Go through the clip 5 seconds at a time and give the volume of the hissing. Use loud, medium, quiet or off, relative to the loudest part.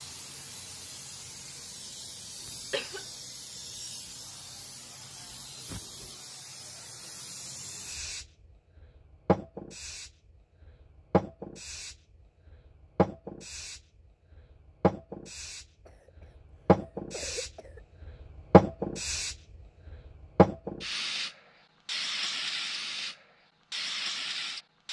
quiet, medium, medium, loud, loud.